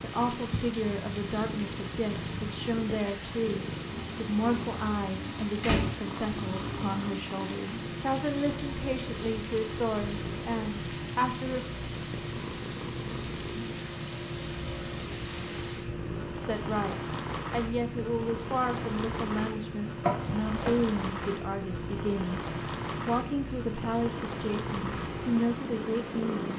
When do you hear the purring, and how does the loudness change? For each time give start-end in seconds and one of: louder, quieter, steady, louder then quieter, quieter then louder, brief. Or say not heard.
0.0-26.5 steady.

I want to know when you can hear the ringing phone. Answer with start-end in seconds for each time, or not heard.
not heard.